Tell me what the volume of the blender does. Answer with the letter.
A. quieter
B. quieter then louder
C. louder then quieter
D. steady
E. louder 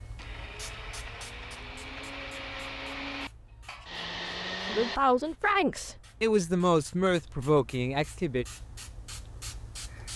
E.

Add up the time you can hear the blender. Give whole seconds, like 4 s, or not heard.
5 s.